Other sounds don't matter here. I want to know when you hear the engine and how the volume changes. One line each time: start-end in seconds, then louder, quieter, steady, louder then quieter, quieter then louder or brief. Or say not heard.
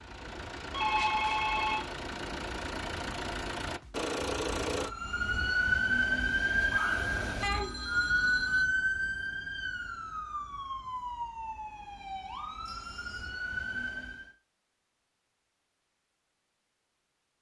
0.0-5.0 louder.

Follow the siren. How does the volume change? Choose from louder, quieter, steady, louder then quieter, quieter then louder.
quieter.